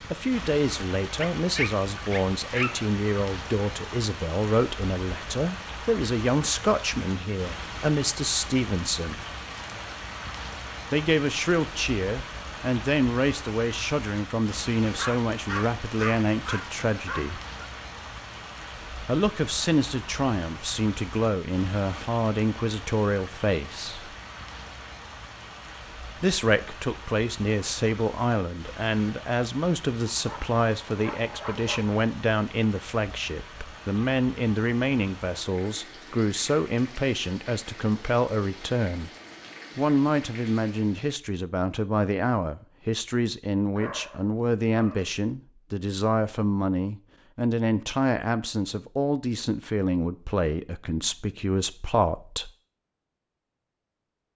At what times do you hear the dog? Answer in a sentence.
You can hear the dog from 1.2 to 2.9 s, from 14.8 to 17.6 s, from 30.1 to 31.9 s and from 43.8 to 45.2 s.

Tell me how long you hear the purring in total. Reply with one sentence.
You can't hear the purring here.